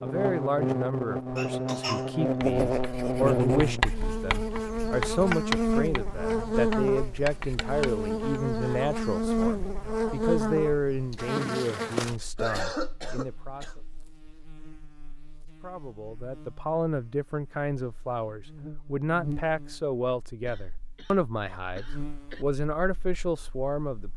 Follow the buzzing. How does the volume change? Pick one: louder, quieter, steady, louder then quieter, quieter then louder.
quieter then louder.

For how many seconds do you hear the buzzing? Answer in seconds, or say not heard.
24 s.